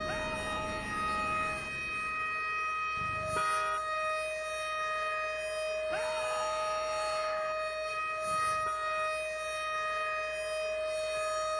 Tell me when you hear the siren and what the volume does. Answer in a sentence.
The siren can be heard from 0.0 to 11.5 s, at a steady volume.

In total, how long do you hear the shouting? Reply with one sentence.
You can hear the shouting for 3 seconds altogether.